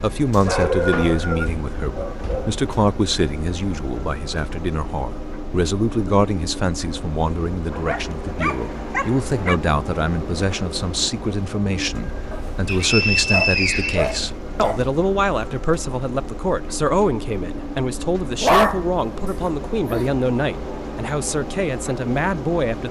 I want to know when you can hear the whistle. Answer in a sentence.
You can hear the whistle from 0.3 to 1.5 s and from 12.7 to 14.7 s.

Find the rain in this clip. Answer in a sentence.
You can't hear the rain here.